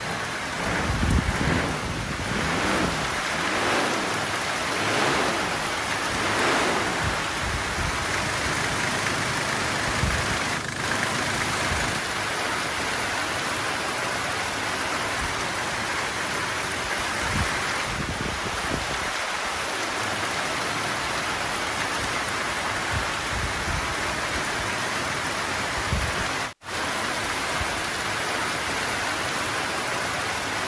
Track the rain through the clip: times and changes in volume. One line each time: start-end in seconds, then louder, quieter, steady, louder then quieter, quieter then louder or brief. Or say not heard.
0.0-30.6 steady.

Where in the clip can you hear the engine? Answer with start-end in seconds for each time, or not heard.
0.0-12.0.